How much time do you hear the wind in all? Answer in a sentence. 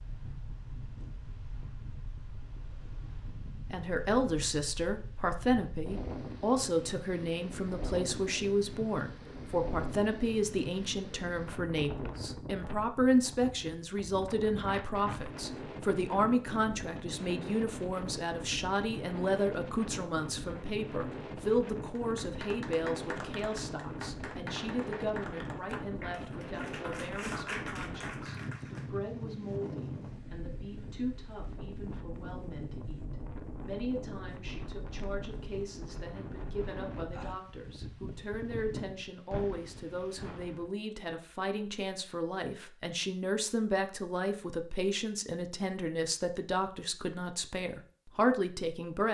The wind can be heard for 41 seconds in total.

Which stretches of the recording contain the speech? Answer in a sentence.
The speech can be heard from 3.7 to 49.0 s.